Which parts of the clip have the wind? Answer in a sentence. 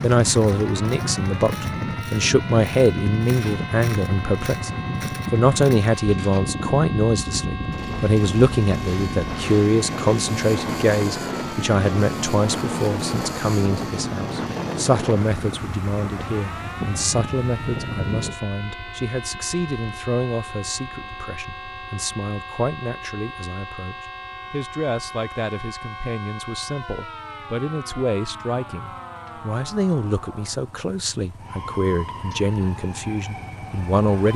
You can hear the wind from 0.0 to 18.4 s.